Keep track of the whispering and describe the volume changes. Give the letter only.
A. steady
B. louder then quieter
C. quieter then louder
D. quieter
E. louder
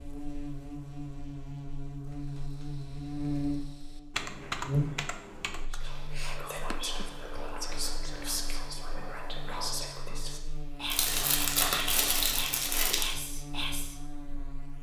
A.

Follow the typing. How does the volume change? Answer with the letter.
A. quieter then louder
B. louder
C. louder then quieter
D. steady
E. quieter
C.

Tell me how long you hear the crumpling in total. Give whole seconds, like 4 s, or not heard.
2 s.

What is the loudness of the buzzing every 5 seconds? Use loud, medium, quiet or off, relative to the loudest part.
loud, quiet, medium.